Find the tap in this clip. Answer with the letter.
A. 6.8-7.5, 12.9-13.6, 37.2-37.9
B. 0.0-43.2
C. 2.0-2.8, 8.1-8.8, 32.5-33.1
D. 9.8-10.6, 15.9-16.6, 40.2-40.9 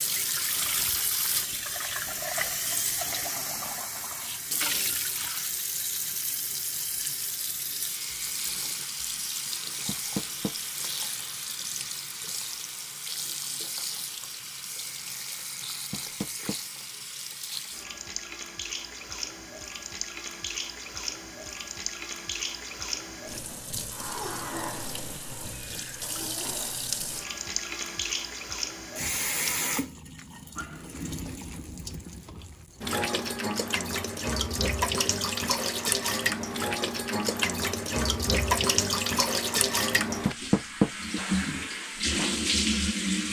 B.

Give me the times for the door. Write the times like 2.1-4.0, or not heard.
9.8-10.6, 15.9-16.6, 40.2-40.9.